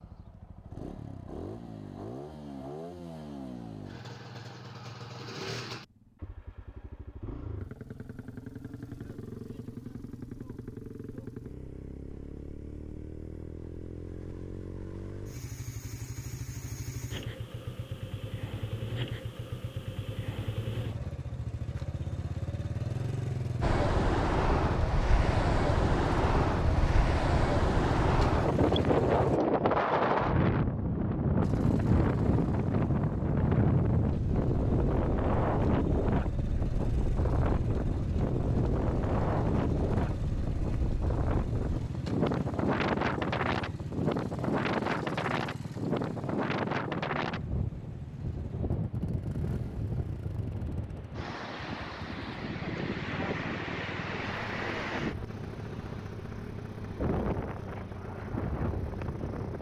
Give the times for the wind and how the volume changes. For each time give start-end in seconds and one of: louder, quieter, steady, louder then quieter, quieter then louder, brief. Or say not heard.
23.6-59.5 quieter.